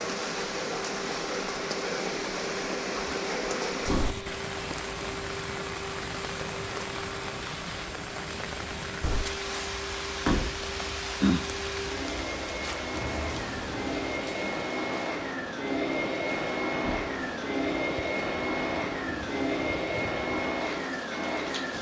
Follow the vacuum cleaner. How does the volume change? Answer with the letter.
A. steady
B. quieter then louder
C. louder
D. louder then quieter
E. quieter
C.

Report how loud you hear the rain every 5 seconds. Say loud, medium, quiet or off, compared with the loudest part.
loud, loud, loud, medium, medium.